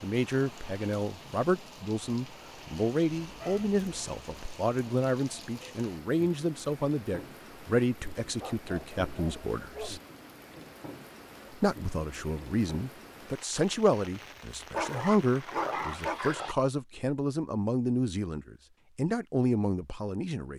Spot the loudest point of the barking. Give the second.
16 s.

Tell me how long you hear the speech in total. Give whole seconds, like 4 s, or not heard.
19 s.